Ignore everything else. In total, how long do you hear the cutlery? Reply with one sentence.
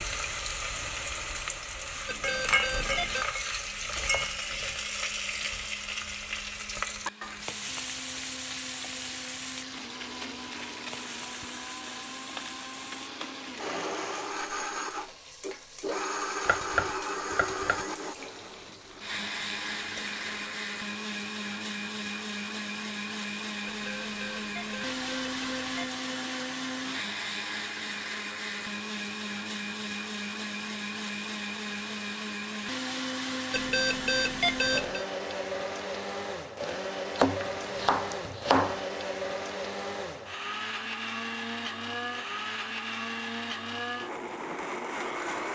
You can't hear the cutlery here.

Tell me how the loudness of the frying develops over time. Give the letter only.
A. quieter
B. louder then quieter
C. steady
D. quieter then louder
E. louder
A.